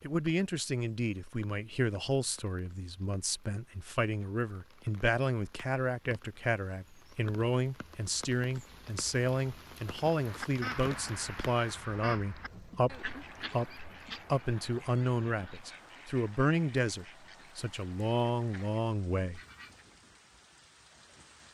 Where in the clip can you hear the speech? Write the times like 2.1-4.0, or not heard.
0.0-19.4.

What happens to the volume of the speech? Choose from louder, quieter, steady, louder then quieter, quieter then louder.
steady.